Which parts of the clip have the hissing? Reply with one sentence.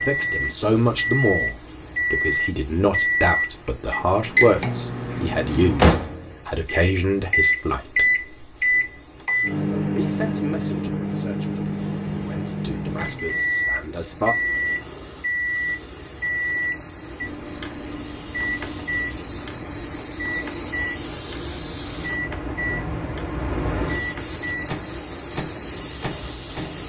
The hissing can be heard from 0.0 to 26.8 s.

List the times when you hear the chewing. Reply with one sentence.
You can't hear the chewing here.